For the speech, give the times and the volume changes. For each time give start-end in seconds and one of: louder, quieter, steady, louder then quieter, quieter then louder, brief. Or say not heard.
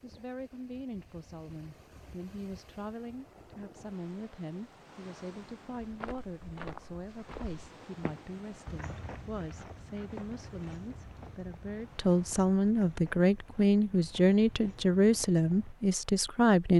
0.0-16.7 louder.